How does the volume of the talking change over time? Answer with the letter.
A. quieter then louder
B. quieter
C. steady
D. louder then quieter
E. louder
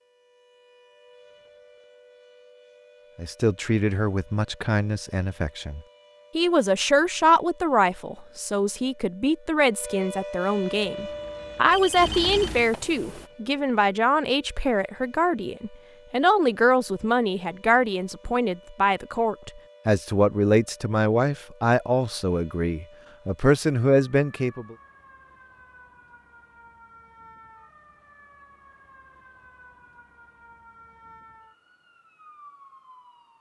C.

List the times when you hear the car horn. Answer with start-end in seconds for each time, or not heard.
not heard.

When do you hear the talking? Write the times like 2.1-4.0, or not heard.
3.1-24.8.